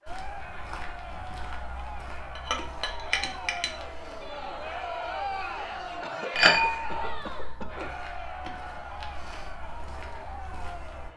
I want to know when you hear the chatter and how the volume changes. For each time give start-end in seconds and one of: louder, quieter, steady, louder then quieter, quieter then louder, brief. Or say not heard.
0.0-11.1 louder then quieter.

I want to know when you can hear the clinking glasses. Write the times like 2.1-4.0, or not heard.
2.4-3.7, 6.3-7.5.